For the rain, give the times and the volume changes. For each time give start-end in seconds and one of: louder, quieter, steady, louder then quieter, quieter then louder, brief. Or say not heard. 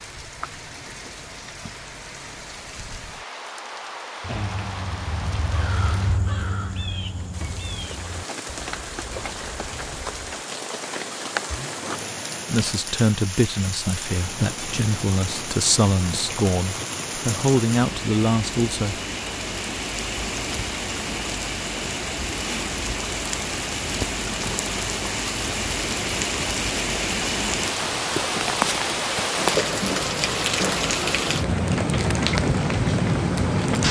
0.0-33.8 louder.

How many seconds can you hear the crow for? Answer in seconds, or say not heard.
6 s.